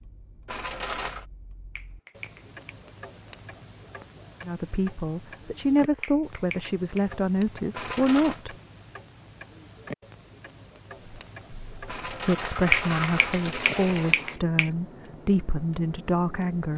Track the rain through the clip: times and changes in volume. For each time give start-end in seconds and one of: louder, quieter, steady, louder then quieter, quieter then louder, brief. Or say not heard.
not heard.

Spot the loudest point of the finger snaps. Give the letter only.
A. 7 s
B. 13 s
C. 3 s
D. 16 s
B.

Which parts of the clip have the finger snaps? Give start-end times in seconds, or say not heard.
1.8-2.8, 6.0-7.0, 12.7-14.7.